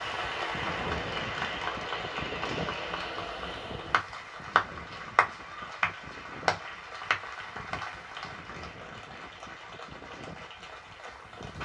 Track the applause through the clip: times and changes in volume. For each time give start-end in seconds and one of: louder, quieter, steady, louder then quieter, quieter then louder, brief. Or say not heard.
0.0-11.5 quieter.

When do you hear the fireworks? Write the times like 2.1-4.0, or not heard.
not heard.